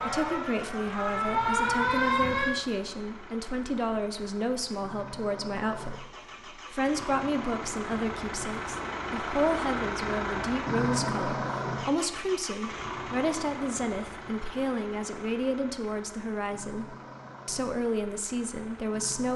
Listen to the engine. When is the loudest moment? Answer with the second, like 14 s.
11 s.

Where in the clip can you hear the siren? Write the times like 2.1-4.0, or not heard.
0.0-2.5.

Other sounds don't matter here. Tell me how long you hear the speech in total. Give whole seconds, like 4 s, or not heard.
19 s.